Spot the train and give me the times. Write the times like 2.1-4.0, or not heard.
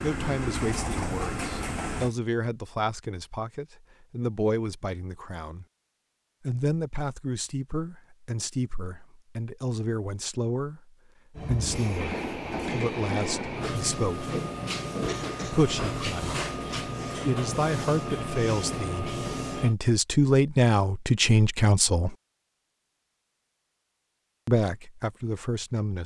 0.0-2.1, 11.3-19.8.